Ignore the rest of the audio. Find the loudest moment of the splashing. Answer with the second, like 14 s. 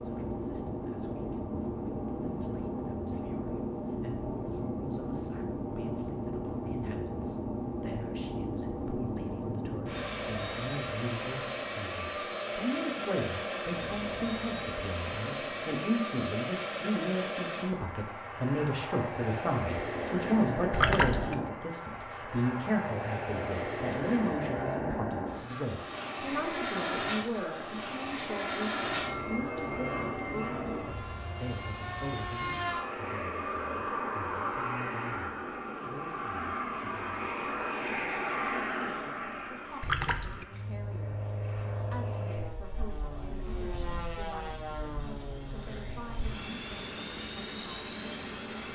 21 s.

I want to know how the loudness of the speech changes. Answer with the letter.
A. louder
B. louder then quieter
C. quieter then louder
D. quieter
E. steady
B.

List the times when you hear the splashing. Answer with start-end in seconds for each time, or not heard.
20.7-21.4, 39.8-40.5.